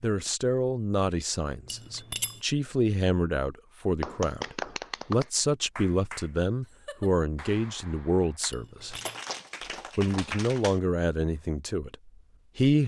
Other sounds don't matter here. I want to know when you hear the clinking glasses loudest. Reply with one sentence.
The volume of the clinking glasses peaks at 2 seconds.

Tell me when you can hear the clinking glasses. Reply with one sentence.
The clinking glasses can be heard from 1.6 to 2.4 s and from 8.5 to 9.2 s.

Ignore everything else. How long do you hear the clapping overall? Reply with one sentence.
You can hear the clapping for 7 seconds altogether.